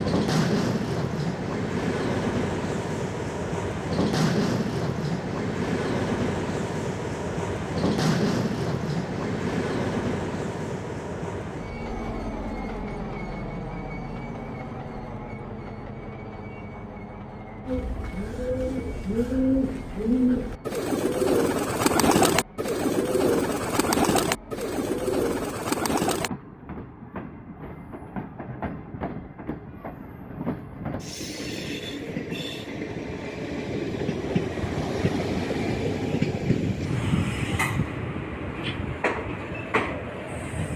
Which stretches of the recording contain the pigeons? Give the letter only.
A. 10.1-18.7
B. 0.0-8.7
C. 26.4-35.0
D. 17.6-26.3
D.